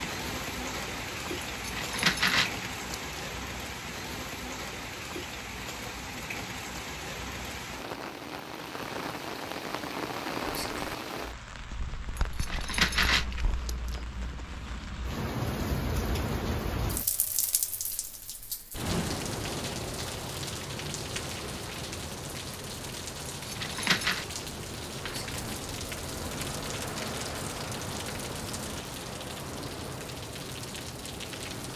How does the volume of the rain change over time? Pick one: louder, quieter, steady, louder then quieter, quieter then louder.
steady.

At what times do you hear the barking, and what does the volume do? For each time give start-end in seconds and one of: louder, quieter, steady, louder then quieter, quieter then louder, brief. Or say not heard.
not heard.